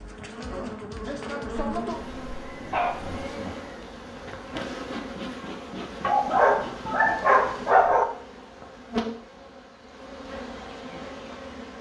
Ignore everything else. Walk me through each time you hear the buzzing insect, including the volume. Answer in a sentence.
The buzzing insect can be heard from 0.0 to 11.7 s, getting quieter.